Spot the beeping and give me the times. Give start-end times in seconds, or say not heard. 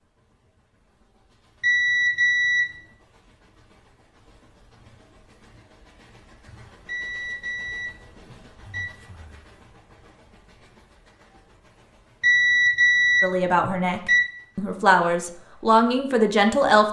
1.6-2.7, 6.8-8.8, 12.2-14.2.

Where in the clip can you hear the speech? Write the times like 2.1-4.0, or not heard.
13.2-16.8.